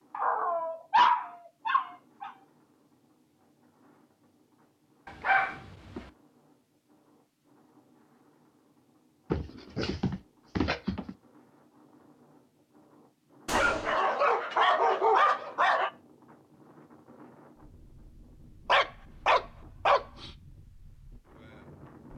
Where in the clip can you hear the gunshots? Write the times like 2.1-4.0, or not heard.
13.4-14.0.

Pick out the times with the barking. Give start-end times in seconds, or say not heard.
0.1-2.3, 5.0-6.1, 9.3-11.2, 13.5-15.9, 18.6-20.3.